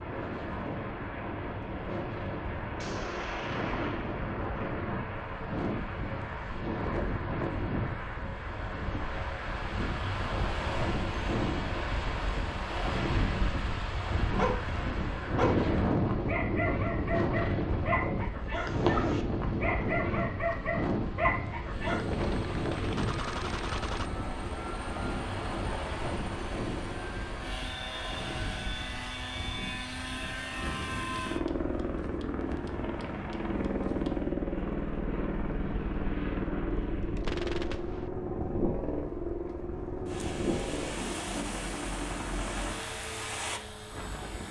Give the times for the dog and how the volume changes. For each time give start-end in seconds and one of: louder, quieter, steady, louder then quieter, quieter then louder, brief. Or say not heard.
14.3-22.1 steady.